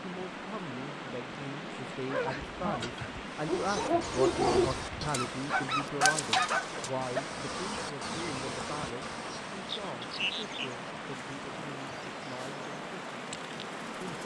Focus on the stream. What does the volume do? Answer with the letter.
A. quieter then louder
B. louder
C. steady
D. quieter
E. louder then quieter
C.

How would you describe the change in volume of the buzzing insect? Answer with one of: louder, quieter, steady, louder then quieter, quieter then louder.
quieter.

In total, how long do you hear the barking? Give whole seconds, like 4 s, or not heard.
5 s.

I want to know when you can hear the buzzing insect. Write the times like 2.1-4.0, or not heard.
3.2-14.2.